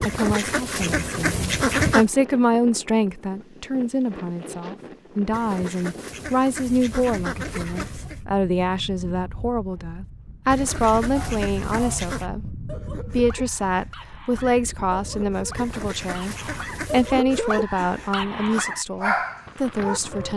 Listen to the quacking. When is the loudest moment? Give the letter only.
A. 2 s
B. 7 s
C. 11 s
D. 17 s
A.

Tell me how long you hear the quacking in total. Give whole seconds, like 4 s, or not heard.
8 s.